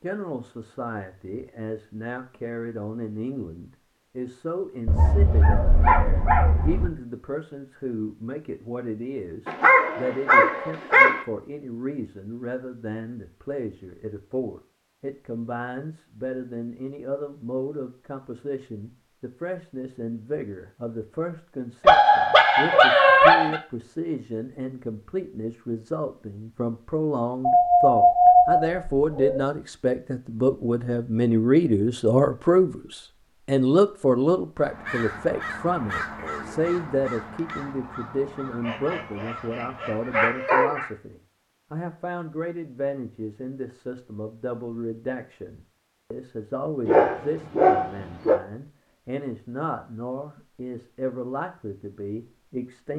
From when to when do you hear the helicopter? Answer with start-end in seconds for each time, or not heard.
not heard.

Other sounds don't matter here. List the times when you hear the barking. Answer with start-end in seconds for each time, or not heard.
4.8-6.9, 9.4-11.2, 21.9-23.6, 27.4-29.4, 38.6-40.9, 46.9-48.4.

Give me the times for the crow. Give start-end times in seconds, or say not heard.
34.5-40.4.